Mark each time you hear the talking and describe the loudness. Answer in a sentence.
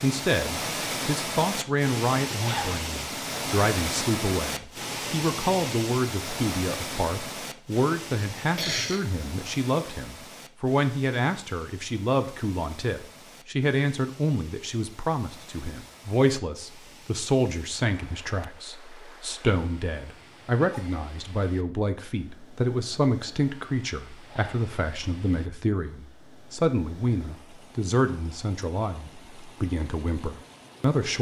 The talking can be heard from 0.0 to 31.1 s, at a steady volume.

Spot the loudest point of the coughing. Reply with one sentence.
The loudest moment of the coughing is at 9 seconds.